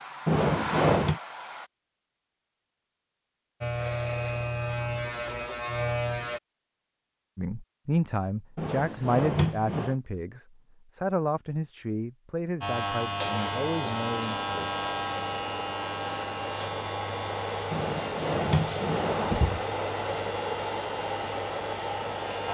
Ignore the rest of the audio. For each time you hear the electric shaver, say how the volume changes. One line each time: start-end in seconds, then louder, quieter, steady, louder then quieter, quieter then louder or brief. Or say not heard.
3.6-6.4 brief
12.6-22.5 quieter.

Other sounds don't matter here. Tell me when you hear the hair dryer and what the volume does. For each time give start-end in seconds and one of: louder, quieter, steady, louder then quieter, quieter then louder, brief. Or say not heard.
0.0-1.7 brief
13.3-22.5 louder.